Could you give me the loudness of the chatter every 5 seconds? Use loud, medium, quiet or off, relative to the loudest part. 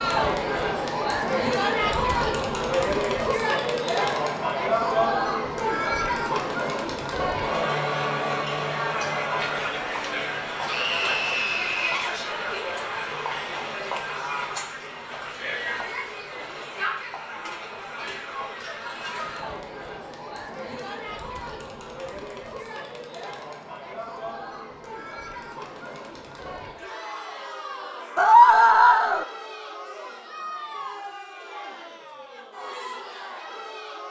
loud, loud, medium, medium, quiet, quiet, quiet.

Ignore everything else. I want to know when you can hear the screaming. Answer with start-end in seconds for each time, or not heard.
10.7-12.2, 28.1-29.2.